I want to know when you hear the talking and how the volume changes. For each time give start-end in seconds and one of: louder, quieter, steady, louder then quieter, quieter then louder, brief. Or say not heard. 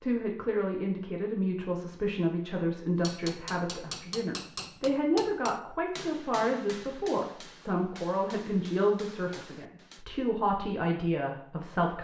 0.0-11.9 steady.